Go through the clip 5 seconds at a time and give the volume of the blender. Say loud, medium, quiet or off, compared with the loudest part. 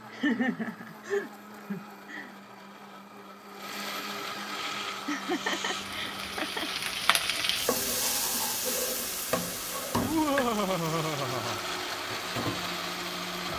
medium, medium, loud.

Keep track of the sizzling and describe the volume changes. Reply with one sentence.
The loudness of the sizzling goes up, then down.